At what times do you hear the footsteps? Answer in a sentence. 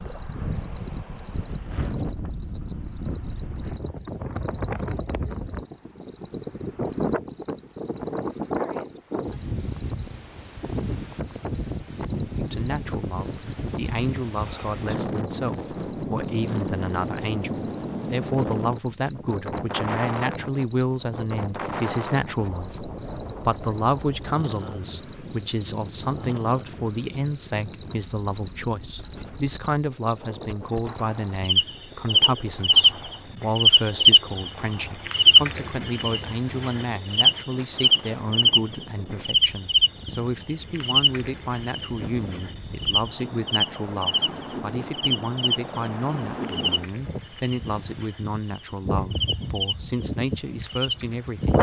The footsteps can't be heard in this clip.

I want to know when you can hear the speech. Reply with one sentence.
The speech can be heard from 12.3 to 51.5 s.